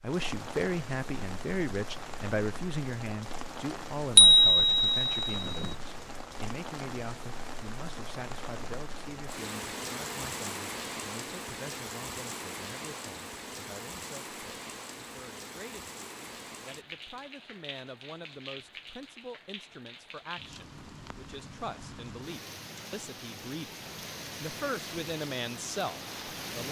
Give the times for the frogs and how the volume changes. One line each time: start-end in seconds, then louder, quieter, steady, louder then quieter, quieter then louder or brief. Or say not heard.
not heard.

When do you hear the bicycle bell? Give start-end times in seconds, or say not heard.
4.2-5.7.